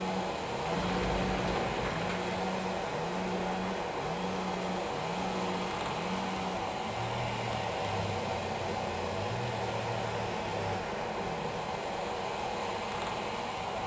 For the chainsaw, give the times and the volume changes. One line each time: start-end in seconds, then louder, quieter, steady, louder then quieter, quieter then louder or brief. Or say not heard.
0.0-11.7 steady.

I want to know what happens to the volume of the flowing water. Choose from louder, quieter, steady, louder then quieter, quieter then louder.
steady.